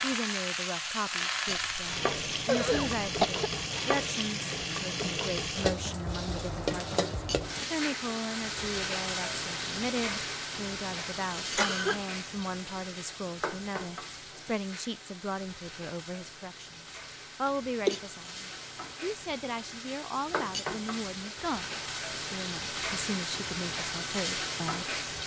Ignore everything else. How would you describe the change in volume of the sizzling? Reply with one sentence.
The loudness of the sizzling goes down, then up.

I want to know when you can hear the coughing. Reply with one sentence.
The coughing can be heard from 1.4 to 3.5 s, from 11.4 to 12.0 s and from 17.4 to 18.0 s.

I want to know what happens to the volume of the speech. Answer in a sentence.
The volume of the speech stays about the same.